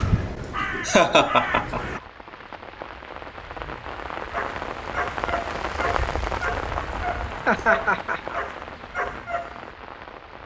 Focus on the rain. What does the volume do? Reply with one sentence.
The volume of the rain goes up, then down.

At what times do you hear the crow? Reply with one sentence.
The crow can be heard from 0.0 to 2.0 s.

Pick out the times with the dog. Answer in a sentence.
You can hear the dog from 4.3 to 9.8 s.